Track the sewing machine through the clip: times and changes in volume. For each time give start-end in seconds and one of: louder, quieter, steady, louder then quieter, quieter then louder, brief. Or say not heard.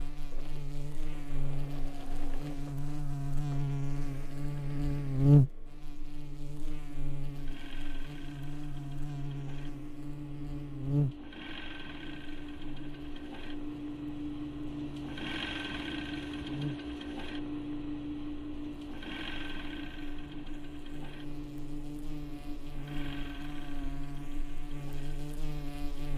0.0-26.1 louder then quieter.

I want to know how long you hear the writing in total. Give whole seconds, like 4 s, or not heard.
not heard.